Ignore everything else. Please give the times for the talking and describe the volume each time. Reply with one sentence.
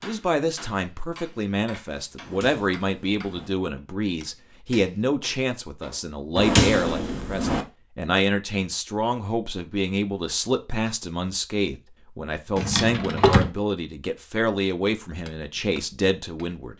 The talking can be heard from 0.0 to 16.7 s, at a steady volume.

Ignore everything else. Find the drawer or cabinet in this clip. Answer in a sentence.
You can hear the drawer or cabinet from 2.2 to 3.5 s, from 6.3 to 7.7 s and from 12.6 to 13.5 s.